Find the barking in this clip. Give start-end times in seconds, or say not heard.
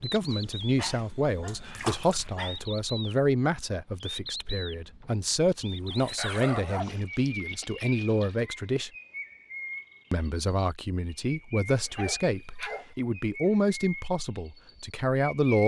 0.3-2.6, 5.9-7.0, 11.8-12.9.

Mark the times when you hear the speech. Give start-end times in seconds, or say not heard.
0.0-8.9, 10.1-15.6.